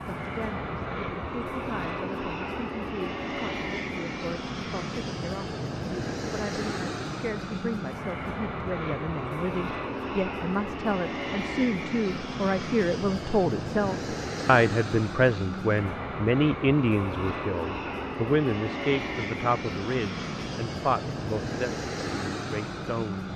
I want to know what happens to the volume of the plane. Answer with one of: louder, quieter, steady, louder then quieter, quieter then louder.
steady.